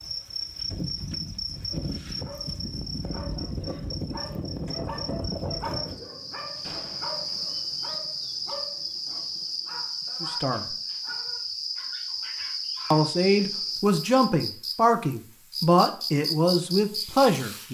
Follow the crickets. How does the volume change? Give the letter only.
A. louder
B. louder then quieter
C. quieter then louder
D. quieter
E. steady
E.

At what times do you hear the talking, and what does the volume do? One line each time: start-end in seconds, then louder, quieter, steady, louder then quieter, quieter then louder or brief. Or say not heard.
10.2-10.8 brief
12.9-17.6 steady.